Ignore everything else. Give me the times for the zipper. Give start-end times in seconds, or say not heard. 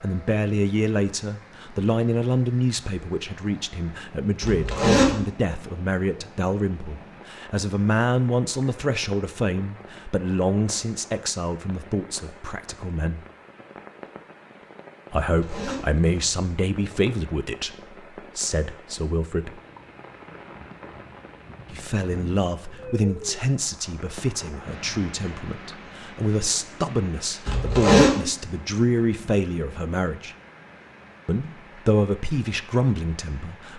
4.4-5.2, 15.2-16.3, 27.4-28.1.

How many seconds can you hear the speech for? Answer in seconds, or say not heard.
29 s.